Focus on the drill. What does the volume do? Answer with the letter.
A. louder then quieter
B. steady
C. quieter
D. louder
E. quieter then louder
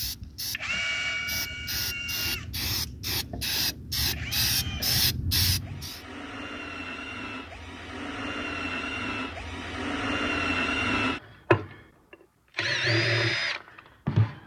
E.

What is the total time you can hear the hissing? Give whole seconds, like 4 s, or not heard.
6 s.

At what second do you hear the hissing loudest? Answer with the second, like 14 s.
5 s.